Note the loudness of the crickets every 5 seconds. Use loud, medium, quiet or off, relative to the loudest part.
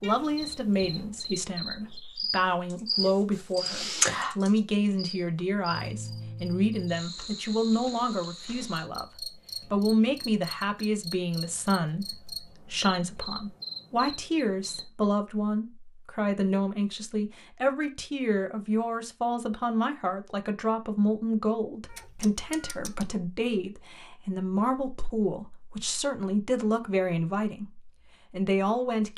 loud, medium, medium, off, off, off.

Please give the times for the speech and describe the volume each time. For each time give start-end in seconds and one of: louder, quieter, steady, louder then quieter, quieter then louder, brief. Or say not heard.
0.0-29.1 steady.